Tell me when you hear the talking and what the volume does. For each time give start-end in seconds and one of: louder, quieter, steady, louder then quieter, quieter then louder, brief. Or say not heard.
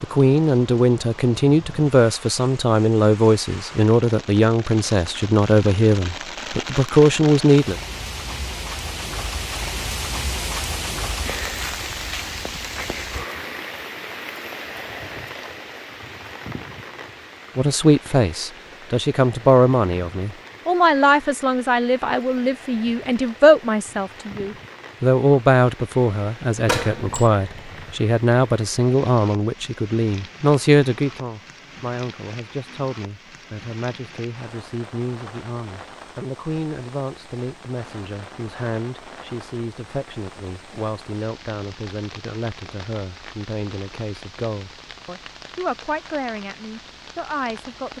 0.0-7.8 steady
17.6-47.9 quieter.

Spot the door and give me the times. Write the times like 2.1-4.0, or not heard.
26.6-27.3.